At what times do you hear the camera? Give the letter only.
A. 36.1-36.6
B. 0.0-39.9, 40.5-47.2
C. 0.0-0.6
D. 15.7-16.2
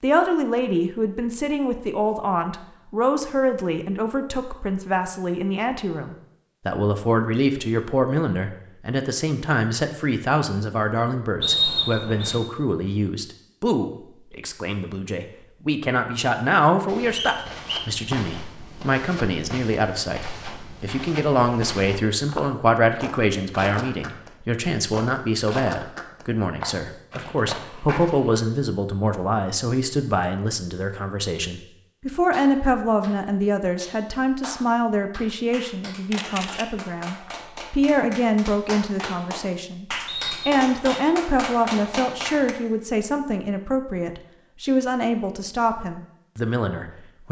A.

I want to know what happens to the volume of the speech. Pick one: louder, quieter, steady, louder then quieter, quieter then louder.
steady.